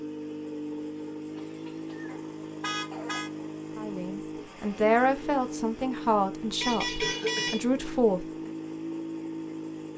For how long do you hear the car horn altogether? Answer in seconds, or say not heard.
2 s.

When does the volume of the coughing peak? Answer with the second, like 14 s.
7 s.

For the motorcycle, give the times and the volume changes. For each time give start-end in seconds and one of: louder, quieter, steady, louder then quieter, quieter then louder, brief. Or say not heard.
0.0-9.9 steady.